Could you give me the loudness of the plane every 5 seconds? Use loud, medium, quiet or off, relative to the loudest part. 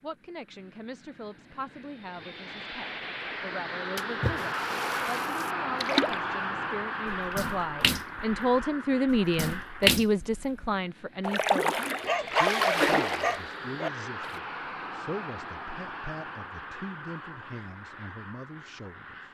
loud, loud, medium, medium.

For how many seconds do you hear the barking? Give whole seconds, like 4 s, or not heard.
2 s.